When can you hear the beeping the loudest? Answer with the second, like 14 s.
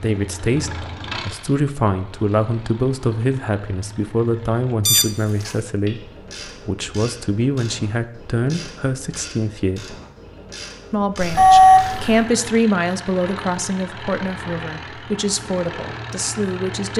12 s.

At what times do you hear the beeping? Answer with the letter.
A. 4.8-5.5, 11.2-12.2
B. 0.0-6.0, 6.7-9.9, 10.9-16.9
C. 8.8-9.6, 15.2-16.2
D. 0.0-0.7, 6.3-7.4
A.